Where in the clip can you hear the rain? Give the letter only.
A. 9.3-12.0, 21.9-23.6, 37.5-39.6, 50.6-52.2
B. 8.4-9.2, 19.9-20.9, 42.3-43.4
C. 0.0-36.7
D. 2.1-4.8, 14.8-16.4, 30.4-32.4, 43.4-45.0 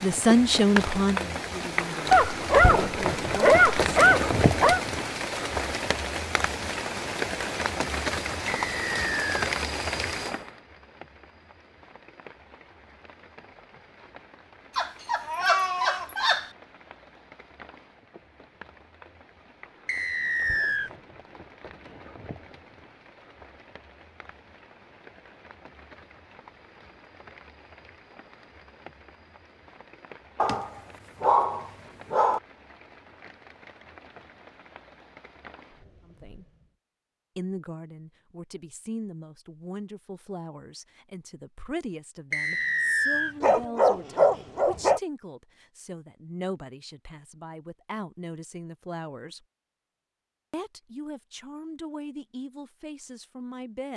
C.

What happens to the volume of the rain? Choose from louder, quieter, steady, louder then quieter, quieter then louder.
quieter.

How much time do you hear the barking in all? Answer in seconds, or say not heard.
8 s.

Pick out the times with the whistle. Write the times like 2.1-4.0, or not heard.
8.4-9.2, 19.9-20.9, 42.3-43.4.